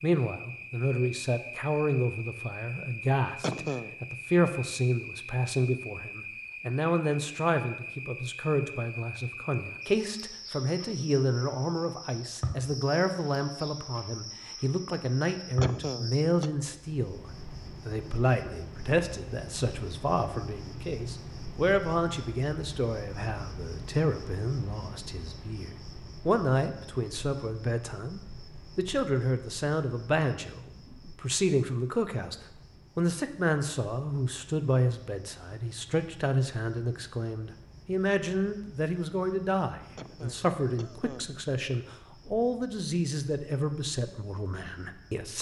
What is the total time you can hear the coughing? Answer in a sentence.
You can hear the coughing for 3 seconds altogether.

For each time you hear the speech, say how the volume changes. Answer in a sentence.
You can hear the speech from 0.0 to 32.4 s, at a steady volume; and from 33.0 to 45.3 s, at a steady volume.